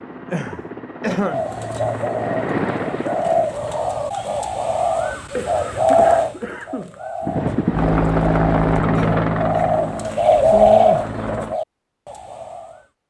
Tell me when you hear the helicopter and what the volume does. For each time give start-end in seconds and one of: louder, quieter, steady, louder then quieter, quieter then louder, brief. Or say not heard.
0.0-4.0 louder then quieter
7.2-11.6 quieter.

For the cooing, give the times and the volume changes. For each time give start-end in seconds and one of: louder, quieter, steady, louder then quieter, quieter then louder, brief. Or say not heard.
1.2-12.8 louder.